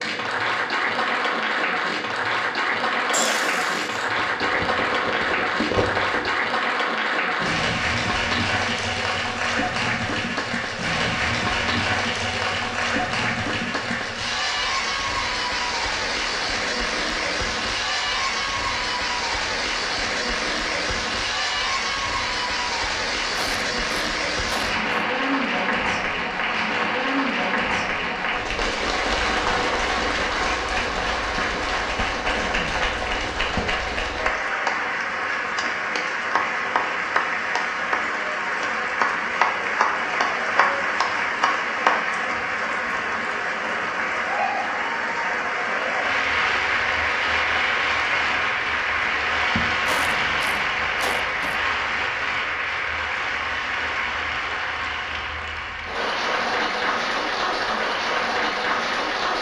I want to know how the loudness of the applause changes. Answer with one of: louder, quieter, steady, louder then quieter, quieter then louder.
steady.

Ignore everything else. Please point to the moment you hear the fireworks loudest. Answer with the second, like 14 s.
6 s.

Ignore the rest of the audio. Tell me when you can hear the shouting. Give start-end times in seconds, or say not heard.
not heard.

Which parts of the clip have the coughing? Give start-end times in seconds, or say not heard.
3.1-4.1, 23.4-24.8, 49.9-51.6.